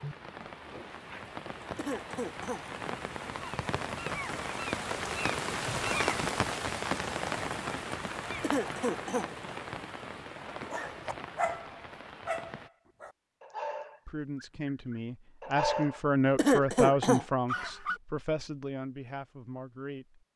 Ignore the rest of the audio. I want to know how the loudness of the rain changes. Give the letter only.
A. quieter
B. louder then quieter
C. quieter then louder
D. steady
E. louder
B.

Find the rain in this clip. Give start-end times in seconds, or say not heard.
0.0-12.7.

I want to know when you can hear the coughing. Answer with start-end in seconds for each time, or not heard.
1.8-2.6, 8.4-9.3, 16.4-17.2.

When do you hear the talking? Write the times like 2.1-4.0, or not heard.
14.1-20.2.